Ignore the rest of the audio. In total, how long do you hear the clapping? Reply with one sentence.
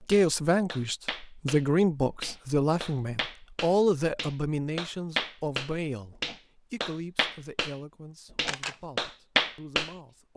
The clapping can be heard for 9 seconds in total.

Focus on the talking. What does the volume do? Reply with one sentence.
The volume of the talking goes down.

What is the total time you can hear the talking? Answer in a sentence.
You can hear the talking for 10 seconds altogether.